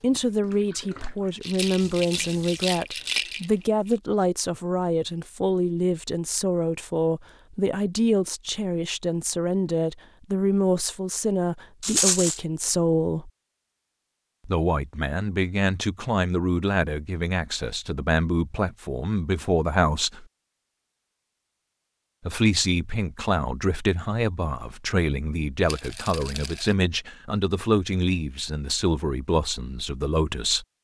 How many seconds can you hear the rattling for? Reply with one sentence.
You can hear the rattling for 4 seconds altogether.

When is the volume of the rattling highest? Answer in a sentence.
The loudest moment of the rattling is at 12 seconds.